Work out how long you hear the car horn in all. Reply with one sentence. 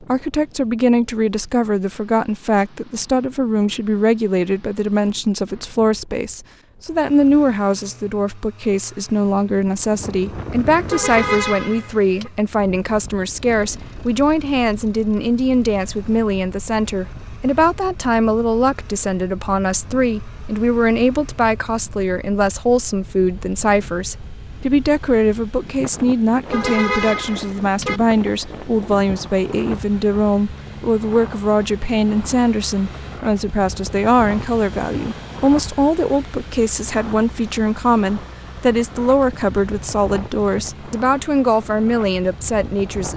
The car horn can be heard for 3 seconds in total.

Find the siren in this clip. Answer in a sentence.
The siren can't be heard in this clip.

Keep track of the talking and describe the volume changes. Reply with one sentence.
The loudness of the talking stays about the same.